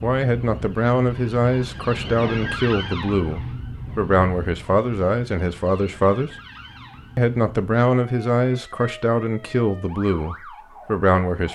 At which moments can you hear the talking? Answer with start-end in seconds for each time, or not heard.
0.0-6.3, 7.2-11.5.